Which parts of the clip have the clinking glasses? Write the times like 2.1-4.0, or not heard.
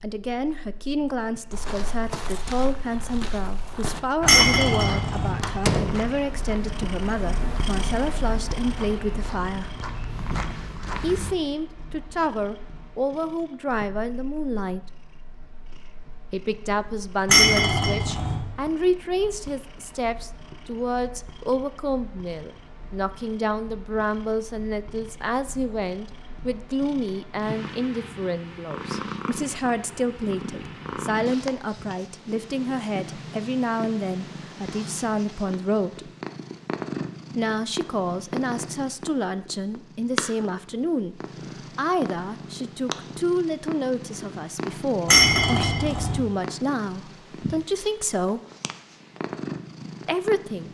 4.2-5.3, 17.2-18.4, 45.0-46.1.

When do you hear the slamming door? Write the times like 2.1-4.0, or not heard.
5.4-6.0.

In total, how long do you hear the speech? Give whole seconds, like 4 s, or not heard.
45 s.